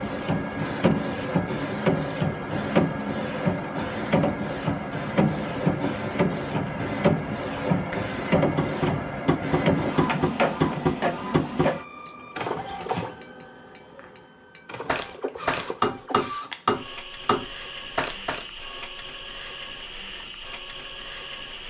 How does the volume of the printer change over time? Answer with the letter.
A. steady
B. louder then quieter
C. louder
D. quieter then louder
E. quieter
E.